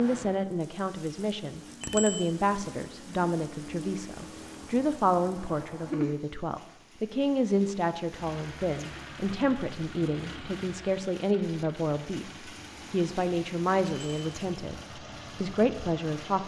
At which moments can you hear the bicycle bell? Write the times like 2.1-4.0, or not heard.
1.8-2.3, 13.8-14.3.